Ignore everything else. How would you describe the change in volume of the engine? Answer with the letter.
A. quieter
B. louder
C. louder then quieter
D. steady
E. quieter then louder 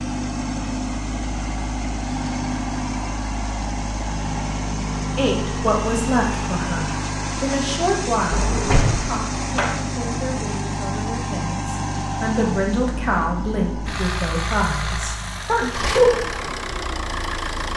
D.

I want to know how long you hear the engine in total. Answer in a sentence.
The engine can be heard for 18 seconds in total.